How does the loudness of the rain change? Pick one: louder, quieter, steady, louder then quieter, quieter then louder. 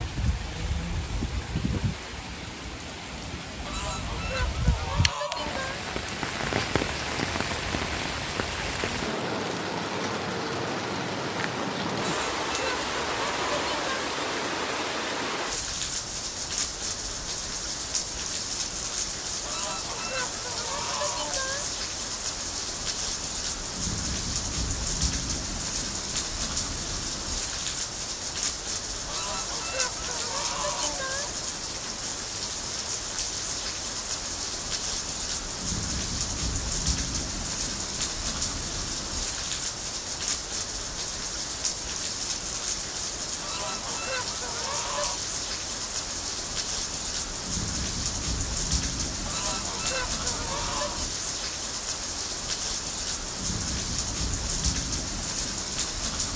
steady.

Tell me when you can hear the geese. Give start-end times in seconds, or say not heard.
3.6-5.8, 11.9-14.1, 19.4-21.7, 29.1-31.5, 43.4-45.2, 49.2-51.1.